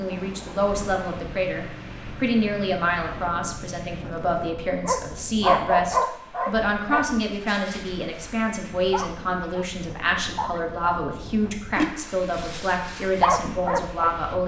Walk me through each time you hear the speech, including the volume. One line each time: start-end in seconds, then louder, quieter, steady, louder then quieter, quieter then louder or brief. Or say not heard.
0.0-14.4 steady.